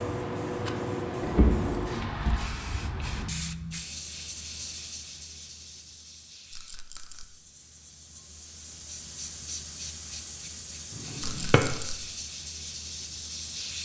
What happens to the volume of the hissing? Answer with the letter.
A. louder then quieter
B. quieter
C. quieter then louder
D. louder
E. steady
C.